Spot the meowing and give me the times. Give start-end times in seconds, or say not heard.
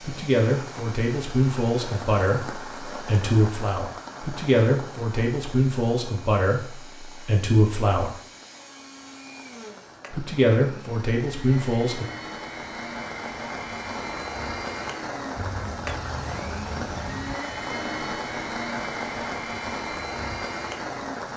15.3-17.4.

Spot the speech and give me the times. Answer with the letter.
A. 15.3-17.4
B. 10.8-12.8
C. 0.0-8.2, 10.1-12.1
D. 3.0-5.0
C.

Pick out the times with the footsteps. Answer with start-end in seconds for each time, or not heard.
not heard.